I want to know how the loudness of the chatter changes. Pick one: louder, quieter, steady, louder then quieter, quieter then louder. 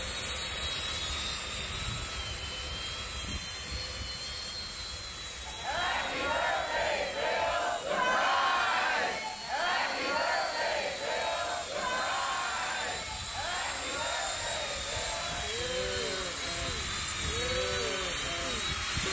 quieter.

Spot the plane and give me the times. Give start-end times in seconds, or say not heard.
0.0-19.0.